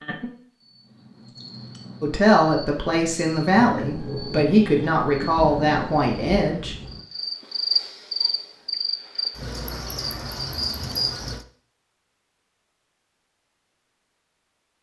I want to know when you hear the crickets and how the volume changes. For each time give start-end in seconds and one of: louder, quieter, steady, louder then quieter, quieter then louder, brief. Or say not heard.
0.0-11.4 louder.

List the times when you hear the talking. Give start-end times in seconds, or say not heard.
2.0-6.8.